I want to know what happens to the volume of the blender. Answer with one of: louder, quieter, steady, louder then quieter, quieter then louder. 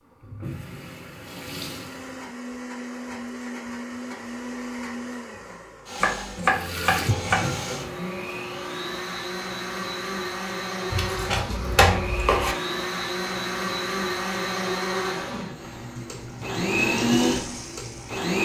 louder.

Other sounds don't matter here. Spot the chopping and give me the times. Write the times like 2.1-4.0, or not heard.
6.0-7.5, 10.9-12.6.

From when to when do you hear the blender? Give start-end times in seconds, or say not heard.
1.6-18.4.